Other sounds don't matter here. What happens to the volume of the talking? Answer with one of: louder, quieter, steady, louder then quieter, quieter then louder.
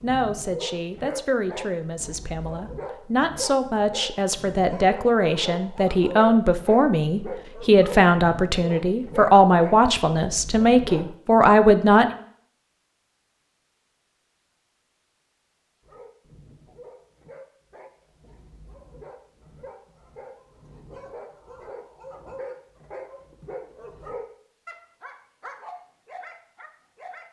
louder.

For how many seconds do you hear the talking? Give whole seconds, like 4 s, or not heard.
12 s.